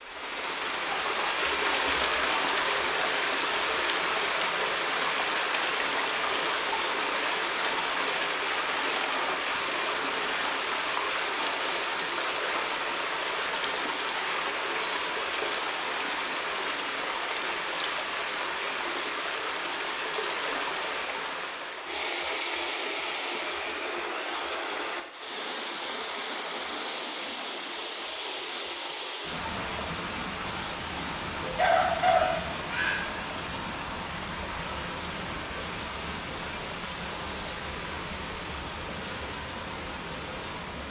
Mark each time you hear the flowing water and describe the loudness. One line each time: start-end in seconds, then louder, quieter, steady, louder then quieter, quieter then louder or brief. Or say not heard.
0.0-40.8 quieter.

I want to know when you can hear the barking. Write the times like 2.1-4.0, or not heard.
31.4-33.1.